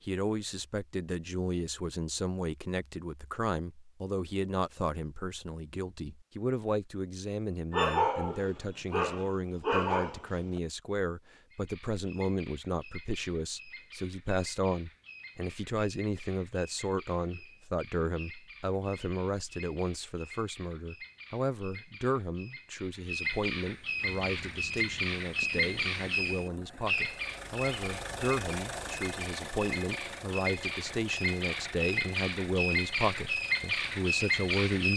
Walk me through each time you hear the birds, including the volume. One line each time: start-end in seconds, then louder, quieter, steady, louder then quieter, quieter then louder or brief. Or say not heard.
11.5-34.9 louder.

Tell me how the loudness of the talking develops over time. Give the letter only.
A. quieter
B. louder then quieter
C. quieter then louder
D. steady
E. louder
D.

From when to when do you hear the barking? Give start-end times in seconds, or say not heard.
7.7-10.6.